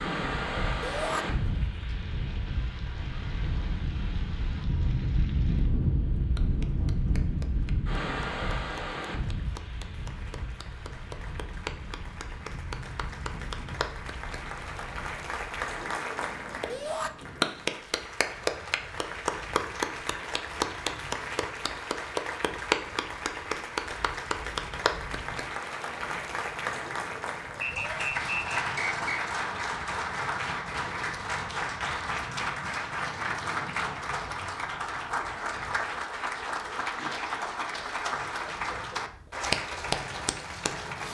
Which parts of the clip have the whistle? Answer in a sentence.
The whistle can be heard from 27.6 to 29.2 s.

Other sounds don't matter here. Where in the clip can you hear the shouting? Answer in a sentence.
You can hear the shouting from 0.8 to 1.2 s, from 16.6 to 17.1 s and from 27.7 to 28.1 s.